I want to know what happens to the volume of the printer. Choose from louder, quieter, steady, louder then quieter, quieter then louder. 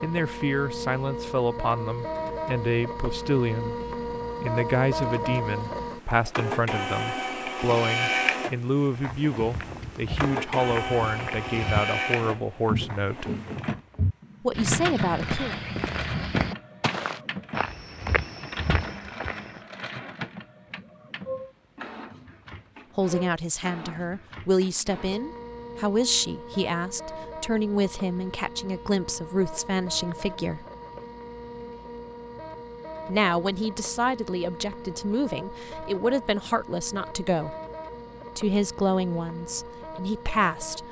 quieter.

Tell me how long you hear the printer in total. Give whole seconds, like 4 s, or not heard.
41 s.